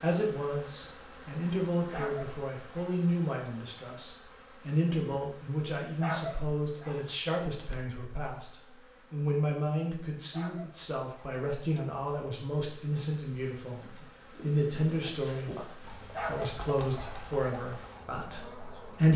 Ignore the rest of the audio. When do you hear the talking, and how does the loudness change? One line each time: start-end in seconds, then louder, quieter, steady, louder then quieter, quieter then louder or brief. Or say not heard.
0.0-19.1 steady.